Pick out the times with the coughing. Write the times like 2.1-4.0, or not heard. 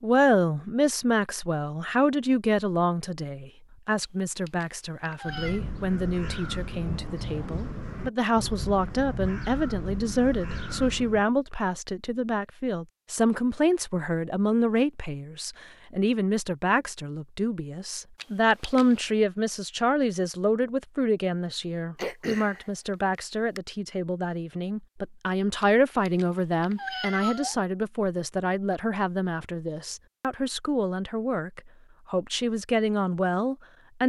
21.9-22.9.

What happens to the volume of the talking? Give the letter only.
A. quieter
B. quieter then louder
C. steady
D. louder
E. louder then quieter
C.